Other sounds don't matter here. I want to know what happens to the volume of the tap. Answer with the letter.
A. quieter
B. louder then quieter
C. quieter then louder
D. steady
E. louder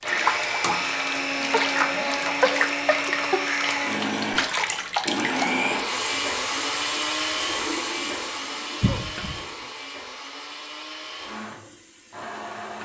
A.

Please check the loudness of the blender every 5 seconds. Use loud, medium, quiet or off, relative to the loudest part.
loud, loud, medium.